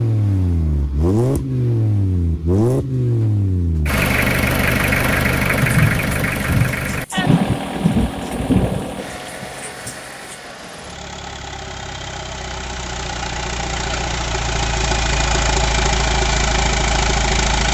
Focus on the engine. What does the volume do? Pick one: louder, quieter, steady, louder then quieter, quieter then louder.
quieter then louder.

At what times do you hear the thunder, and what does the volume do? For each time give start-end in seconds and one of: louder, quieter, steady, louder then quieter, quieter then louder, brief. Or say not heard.
5.5-10.3 quieter.